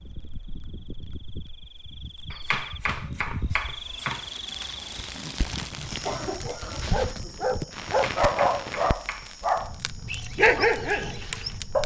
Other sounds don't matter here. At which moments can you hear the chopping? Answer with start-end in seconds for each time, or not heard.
2.3-4.3, 7.8-9.3.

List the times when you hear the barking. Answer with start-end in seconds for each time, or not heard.
6.4-11.8.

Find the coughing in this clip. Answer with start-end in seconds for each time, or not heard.
5.9-7.3.